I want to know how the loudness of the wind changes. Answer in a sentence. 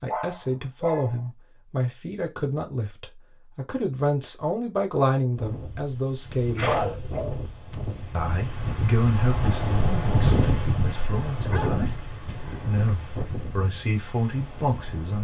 The loudness of the wind goes up, then down.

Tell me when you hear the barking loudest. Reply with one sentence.
The volume of the barking peaks at 7 seconds.